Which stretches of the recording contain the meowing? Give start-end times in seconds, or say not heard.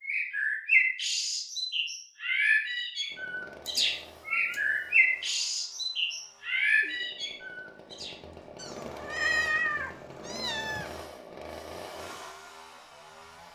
3.6-5.0, 8.6-11.1.